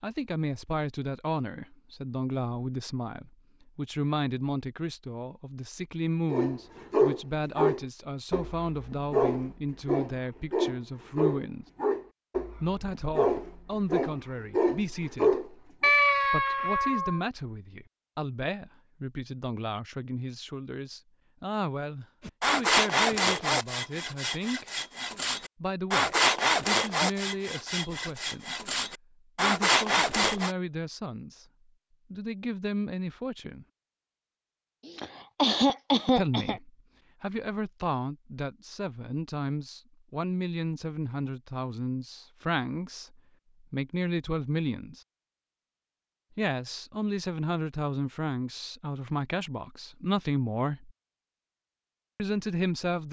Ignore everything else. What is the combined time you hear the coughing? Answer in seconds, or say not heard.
2 s.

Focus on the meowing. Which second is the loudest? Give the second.
16 s.